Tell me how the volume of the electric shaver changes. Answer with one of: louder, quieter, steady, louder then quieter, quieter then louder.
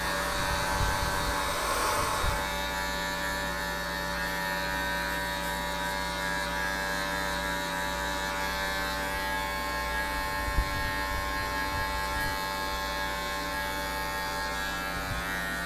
steady.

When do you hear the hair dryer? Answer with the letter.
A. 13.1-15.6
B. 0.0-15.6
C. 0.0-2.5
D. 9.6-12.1
C.